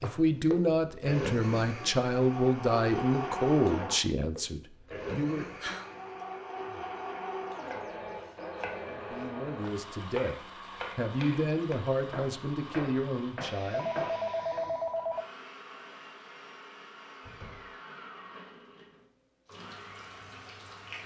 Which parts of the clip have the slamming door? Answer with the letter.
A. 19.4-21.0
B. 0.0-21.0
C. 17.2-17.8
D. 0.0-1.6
C.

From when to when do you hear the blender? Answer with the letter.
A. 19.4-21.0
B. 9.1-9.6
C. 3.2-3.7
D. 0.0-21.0
D.